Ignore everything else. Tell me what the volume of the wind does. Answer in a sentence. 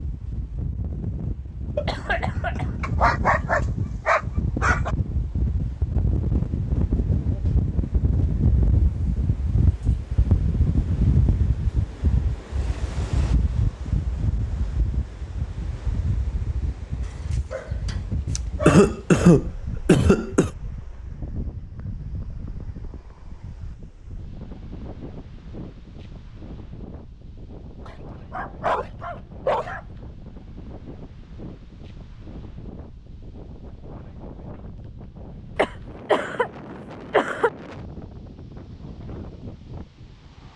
The loudness of the wind goes down.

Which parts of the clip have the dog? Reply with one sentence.
You can hear the dog from 2.8 to 5.0 s, from 17.0 to 18.9 s and from 27.9 to 29.8 s.